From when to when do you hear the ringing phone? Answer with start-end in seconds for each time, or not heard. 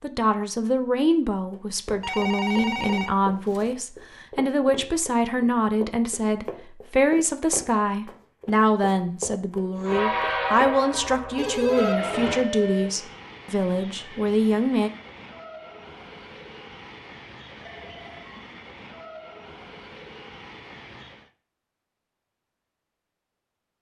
2.0-3.8, 11.3-12.9, 17.6-18.2.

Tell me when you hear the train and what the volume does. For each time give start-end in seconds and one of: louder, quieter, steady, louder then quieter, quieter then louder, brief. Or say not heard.
9.8-21.3 quieter.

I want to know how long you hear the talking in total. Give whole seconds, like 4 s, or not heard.
15 s.